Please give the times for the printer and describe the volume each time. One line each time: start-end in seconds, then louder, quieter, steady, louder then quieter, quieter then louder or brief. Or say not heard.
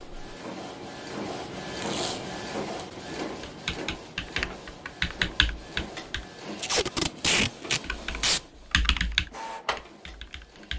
0.0-10.7 quieter.